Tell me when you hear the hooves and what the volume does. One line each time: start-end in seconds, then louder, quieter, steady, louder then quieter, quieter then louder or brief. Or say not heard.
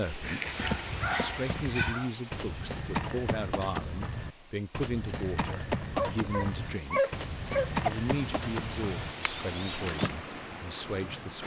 0.2-10.1 steady.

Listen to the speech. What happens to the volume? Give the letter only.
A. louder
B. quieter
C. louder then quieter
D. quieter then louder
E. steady
E.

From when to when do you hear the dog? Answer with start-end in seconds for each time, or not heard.
0.5-2.1, 6.0-7.9.